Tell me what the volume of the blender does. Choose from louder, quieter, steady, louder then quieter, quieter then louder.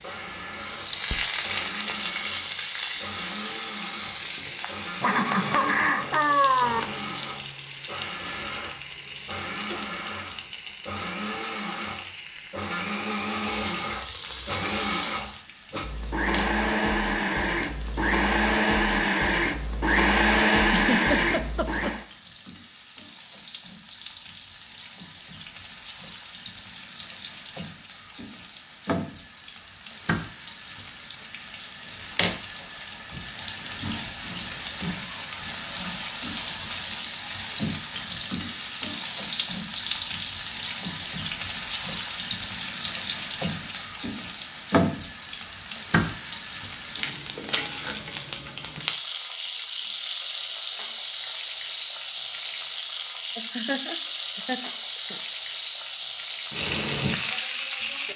louder.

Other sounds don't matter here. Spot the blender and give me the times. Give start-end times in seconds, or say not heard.
0.0-22.1.